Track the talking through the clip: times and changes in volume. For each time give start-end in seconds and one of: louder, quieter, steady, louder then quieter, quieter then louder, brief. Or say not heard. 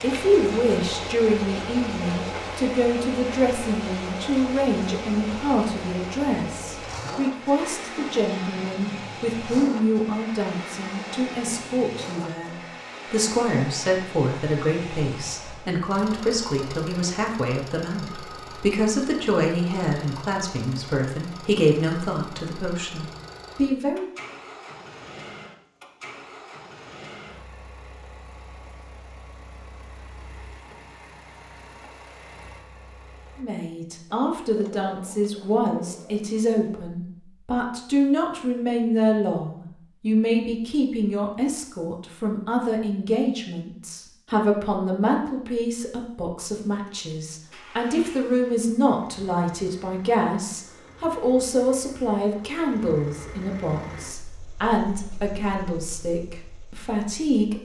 0.0-24.1 steady
33.4-57.5 steady.